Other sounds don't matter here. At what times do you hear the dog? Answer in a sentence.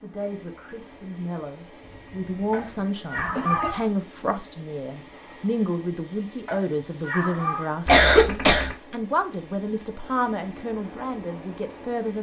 You can't hear the dog here.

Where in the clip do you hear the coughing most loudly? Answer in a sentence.
The volume of the coughing peaks at 8 seconds.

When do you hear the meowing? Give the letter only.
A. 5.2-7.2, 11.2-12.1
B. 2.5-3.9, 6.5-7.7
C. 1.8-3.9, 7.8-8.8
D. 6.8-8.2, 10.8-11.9
B.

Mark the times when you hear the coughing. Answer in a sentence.
The coughing can be heard from 1.8 to 3.9 s and from 7.8 to 8.8 s.